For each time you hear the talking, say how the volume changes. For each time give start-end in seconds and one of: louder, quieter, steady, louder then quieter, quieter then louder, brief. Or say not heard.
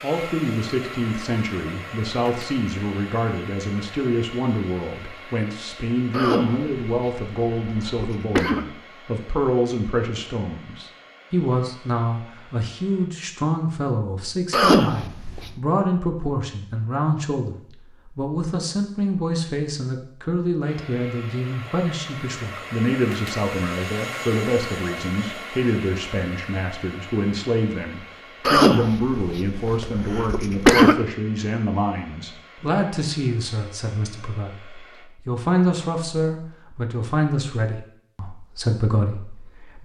0.0-39.8 steady.